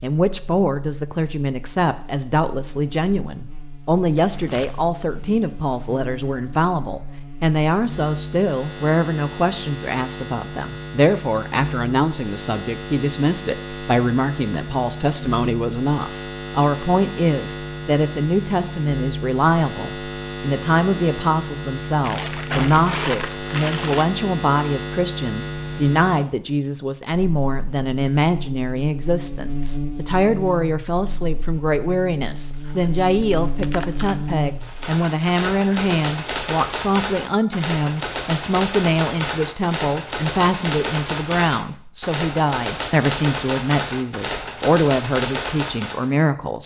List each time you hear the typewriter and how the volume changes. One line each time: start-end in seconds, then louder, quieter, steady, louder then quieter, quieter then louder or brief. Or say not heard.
34.6-46.1 steady.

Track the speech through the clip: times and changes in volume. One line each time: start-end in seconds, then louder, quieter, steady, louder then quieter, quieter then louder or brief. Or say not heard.
0.0-46.6 steady.